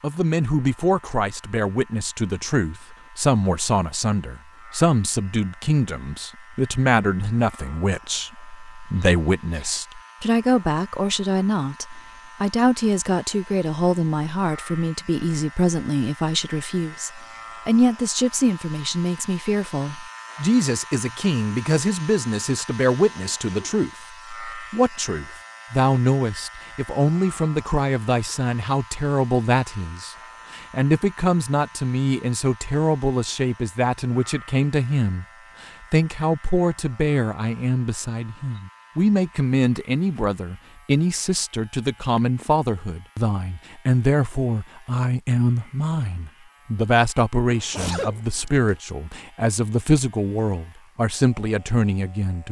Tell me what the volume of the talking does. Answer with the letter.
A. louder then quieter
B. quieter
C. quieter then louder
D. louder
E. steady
E.